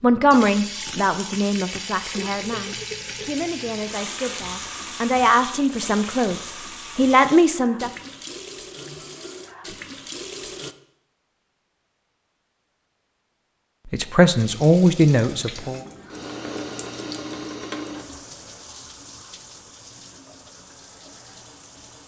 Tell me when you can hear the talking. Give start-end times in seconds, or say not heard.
0.0-7.9, 13.8-15.8.